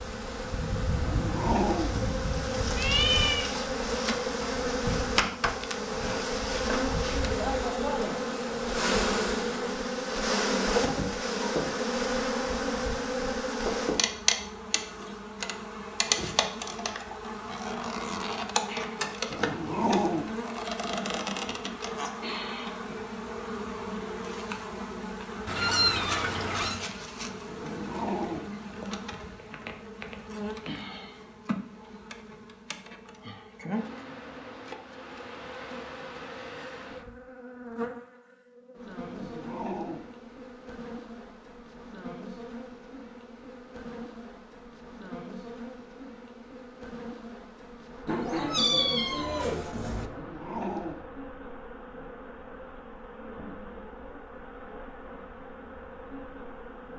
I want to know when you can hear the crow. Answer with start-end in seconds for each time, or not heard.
not heard.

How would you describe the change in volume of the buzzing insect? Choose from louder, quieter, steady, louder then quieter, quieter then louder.
quieter.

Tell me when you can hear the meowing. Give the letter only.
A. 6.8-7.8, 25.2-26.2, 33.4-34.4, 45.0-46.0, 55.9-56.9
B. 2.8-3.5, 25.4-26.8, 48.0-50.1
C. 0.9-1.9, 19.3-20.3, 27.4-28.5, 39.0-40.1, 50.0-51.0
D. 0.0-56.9
B.